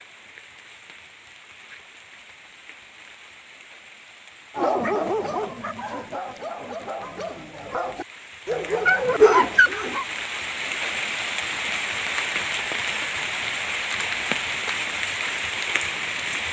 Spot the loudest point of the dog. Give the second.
9 s.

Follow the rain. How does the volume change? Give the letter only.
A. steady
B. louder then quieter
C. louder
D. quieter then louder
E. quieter
C.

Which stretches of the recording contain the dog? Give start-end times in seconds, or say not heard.
4.5-10.1.